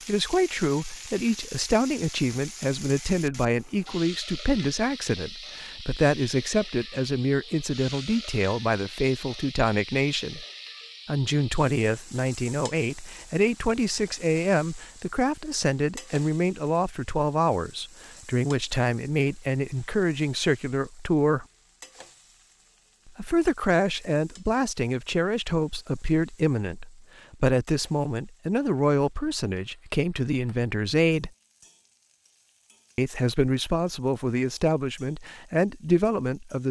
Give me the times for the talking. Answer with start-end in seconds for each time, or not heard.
0.1-10.4, 11.1-21.4, 23.1-31.3, 33.0-36.6.